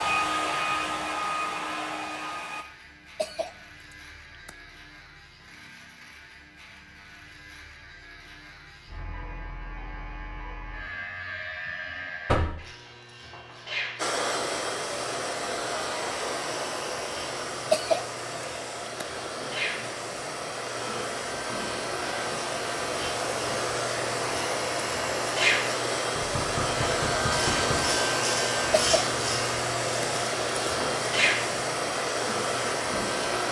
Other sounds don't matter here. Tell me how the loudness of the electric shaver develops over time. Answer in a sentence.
The volume of the electric shaver goes up.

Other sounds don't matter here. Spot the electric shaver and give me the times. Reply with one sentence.
You can hear the electric shaver from 0.1 to 33.4 s.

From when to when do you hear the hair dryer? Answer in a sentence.
You can hear the hair dryer from 0.0 to 2.6 s and from 13.9 to 33.4 s.